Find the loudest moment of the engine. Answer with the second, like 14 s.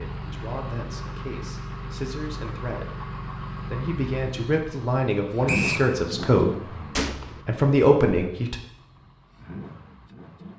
6 s.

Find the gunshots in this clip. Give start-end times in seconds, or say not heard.
7.0-7.4.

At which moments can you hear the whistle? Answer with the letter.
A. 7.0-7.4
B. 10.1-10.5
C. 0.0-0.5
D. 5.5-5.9
D.